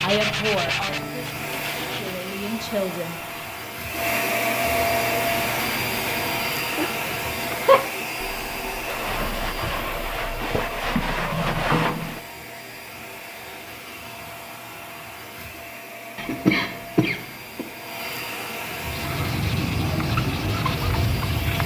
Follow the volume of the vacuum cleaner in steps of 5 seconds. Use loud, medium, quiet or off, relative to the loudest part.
loud, loud, medium, medium, medium.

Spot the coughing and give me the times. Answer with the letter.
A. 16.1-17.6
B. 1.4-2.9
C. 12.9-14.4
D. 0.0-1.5
A.